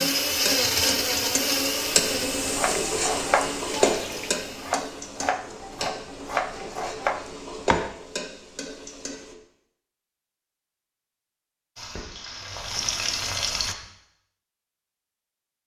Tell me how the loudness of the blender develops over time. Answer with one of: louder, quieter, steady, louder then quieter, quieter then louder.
quieter.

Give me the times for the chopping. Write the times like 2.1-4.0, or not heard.
2.4-7.9.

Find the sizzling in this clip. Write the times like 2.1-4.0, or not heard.
0.0-9.3, 11.8-13.8.